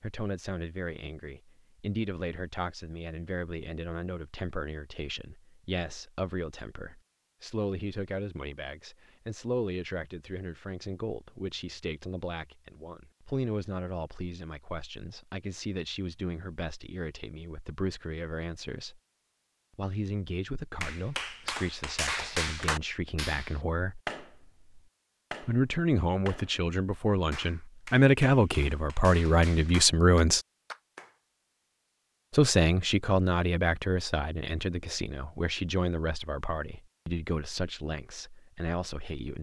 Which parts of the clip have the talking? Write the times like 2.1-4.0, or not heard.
0.0-19.0, 19.8-24.0, 25.4-30.4, 32.3-39.3.